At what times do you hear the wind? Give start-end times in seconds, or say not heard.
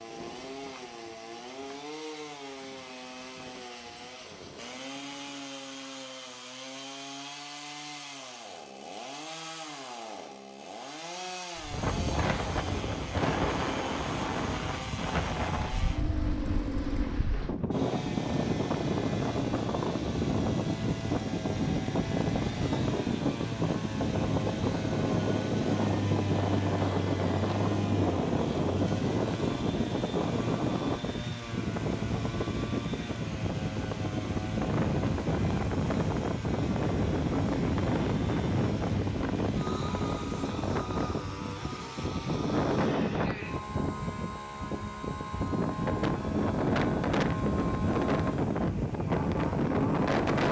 11.6-50.4.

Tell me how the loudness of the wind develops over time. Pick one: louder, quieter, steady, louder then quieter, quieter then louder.
steady.